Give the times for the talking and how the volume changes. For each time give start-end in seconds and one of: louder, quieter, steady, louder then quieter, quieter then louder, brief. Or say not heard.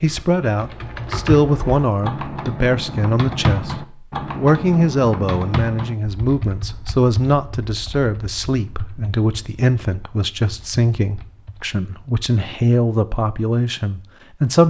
0.0-14.6 steady.